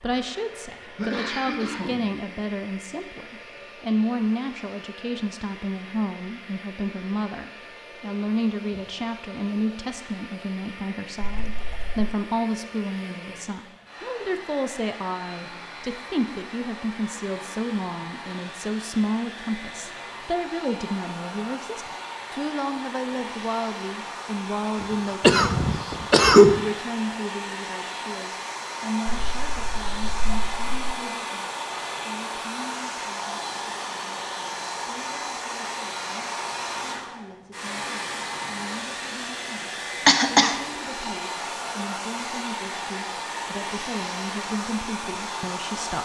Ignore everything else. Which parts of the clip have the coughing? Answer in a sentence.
You can hear the coughing from 0.9 to 2.0 s, from 24.8 to 26.6 s and from 40.0 to 40.6 s.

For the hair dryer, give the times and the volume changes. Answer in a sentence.
You can hear the hair dryer from 0.0 to 45.9 s, getting louder.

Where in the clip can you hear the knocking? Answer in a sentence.
The knocking can't be heard in this clip.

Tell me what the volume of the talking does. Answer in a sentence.
The loudness of the talking goes down.